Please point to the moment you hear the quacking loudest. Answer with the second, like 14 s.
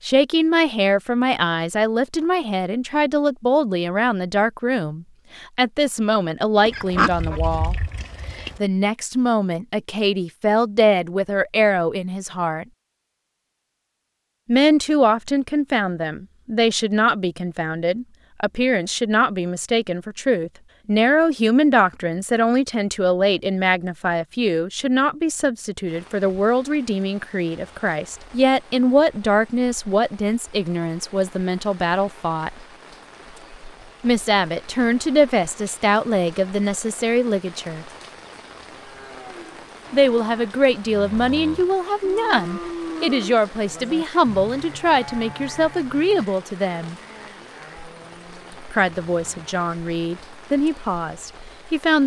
7 s.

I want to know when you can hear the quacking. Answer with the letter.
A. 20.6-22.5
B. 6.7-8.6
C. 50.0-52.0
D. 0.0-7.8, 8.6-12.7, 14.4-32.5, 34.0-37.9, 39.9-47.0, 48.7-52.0
B.